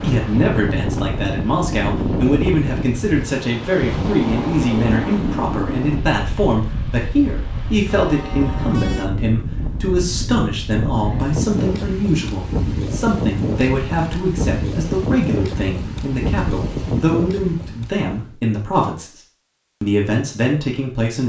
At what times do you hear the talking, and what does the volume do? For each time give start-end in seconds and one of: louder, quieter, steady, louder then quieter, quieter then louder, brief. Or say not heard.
0.0-19.2 steady
19.8-21.2 brief.